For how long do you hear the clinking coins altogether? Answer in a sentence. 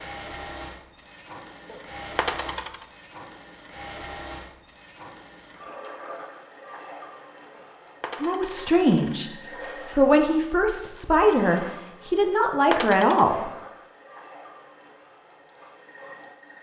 You can hear the clinking coins for 4 seconds altogether.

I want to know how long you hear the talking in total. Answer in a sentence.
The talking can be heard for 5 seconds in total.